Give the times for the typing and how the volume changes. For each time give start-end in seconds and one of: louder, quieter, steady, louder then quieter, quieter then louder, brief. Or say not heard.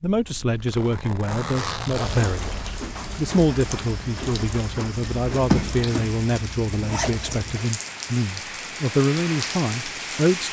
not heard.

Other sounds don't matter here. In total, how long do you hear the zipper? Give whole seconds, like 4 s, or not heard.
5 s.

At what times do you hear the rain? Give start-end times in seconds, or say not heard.
2.0-10.4.